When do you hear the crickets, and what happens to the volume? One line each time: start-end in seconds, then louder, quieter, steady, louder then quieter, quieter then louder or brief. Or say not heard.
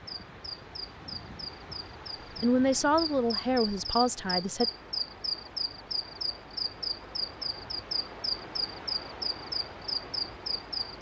0.0-10.9 louder.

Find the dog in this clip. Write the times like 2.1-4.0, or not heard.
not heard.